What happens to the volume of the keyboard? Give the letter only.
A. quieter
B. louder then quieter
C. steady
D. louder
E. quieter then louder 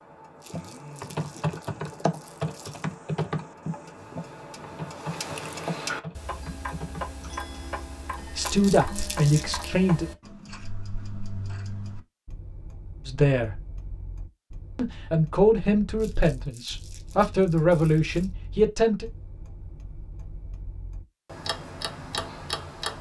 A.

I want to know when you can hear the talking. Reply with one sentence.
The talking can be heard from 8.3 to 10.1 s, from 13.1 to 13.6 s and from 14.8 to 19.1 s.